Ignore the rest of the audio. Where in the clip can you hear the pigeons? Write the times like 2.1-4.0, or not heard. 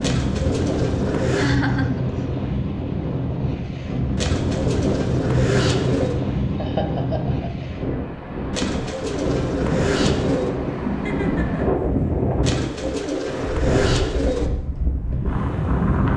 0.0-1.6, 4.2-6.2, 8.5-10.6, 12.4-14.5.